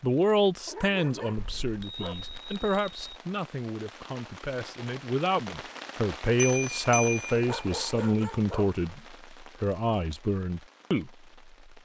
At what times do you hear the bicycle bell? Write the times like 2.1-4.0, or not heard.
1.4-3.2, 6.3-7.5.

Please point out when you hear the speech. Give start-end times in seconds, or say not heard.
0.0-11.1.